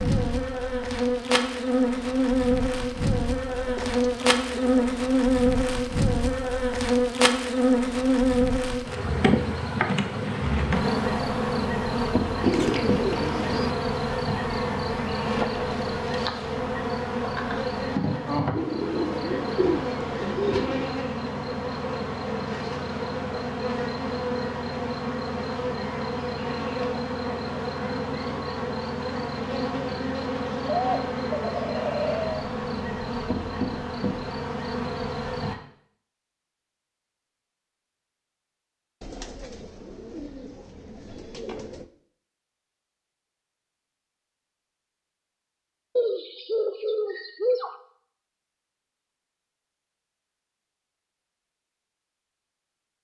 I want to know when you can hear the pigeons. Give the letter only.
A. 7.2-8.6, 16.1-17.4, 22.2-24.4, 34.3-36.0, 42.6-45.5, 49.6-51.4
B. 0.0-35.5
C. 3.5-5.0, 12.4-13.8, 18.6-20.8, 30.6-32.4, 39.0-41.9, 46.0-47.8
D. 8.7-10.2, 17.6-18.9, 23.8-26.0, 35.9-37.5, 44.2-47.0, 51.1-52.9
C.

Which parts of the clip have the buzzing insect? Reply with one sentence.
You can hear the buzzing insect from 0.0 to 35.5 s.